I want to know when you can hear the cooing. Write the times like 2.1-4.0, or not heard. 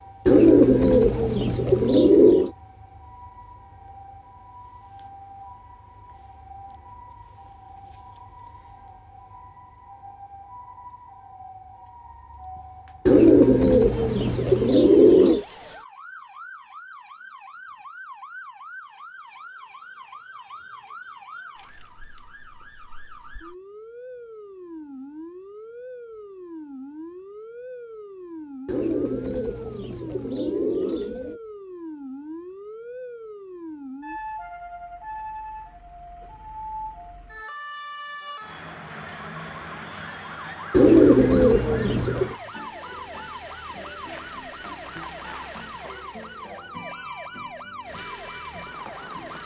0.2-2.5, 13.1-15.4, 28.6-31.4, 40.7-42.4.